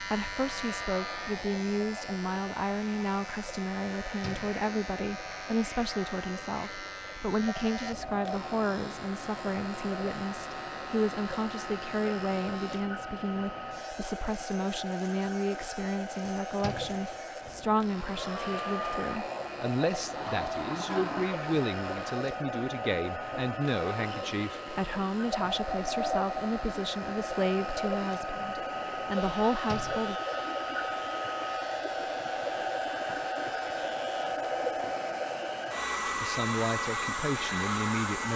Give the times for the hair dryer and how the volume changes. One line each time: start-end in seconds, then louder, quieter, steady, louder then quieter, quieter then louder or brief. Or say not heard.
0.1-38.3 louder.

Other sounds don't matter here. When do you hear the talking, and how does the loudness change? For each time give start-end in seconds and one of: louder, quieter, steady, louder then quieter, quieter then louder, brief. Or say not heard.
0.0-30.2 steady
36.0-38.3 brief.